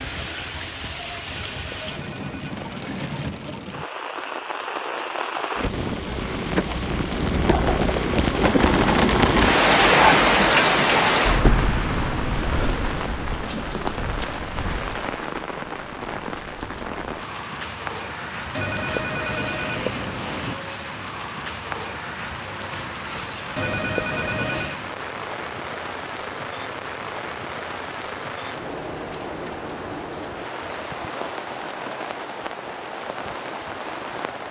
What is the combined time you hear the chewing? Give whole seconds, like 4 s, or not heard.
not heard.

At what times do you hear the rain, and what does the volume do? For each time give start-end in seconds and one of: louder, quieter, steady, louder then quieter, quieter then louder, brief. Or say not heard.
0.0-34.4 louder then quieter.